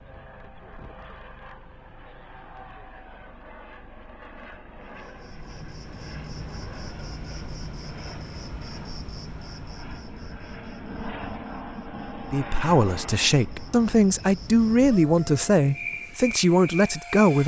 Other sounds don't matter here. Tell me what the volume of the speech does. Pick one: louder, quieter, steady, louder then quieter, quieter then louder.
steady.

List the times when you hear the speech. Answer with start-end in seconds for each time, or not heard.
12.3-17.4.